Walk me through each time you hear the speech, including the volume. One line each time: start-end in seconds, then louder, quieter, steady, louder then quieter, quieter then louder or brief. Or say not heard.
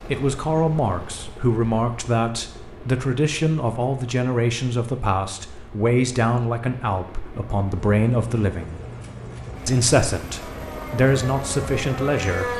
0.1-8.8 steady
9.7-12.5 brief.